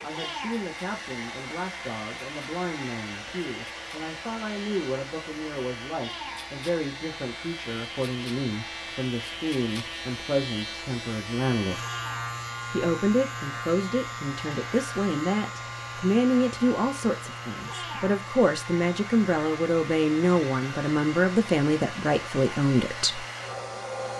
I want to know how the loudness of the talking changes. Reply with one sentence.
The loudness of the talking goes up.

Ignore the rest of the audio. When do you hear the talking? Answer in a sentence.
You can hear the talking from 0.0 to 11.8 s and from 12.7 to 23.2 s.